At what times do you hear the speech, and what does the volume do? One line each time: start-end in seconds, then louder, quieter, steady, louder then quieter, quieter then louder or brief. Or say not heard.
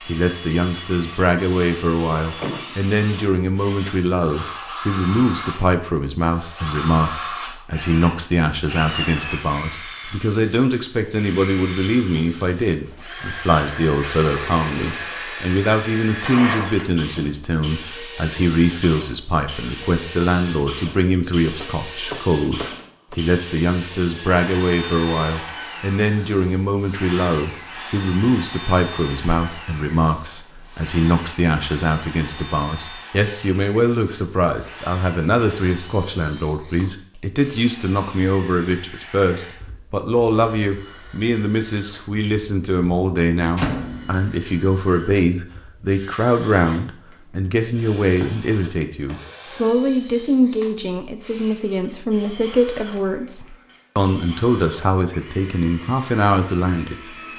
0.1-57.1 steady.